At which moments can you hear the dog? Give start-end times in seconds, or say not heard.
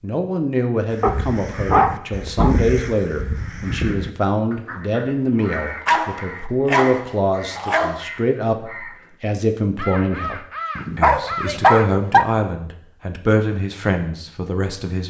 1.0-2.5, 5.4-8.0, 10.8-12.2.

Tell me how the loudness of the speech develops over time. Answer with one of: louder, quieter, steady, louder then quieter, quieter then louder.
steady.